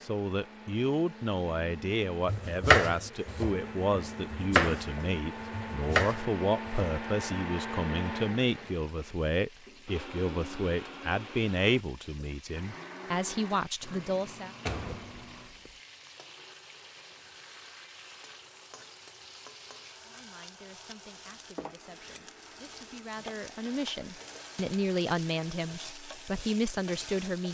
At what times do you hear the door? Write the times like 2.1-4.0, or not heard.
14.7-15.8.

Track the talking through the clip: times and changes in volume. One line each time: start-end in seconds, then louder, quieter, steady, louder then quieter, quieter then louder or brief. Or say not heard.
0.0-14.5 steady
20.1-27.4 louder.